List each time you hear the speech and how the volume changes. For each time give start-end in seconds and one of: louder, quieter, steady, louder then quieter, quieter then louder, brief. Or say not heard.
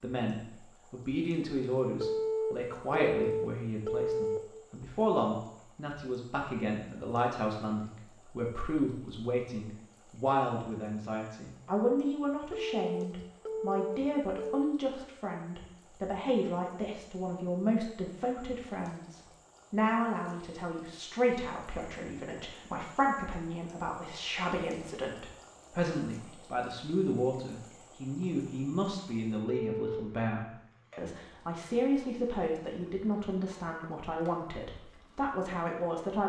0.0-36.2 steady.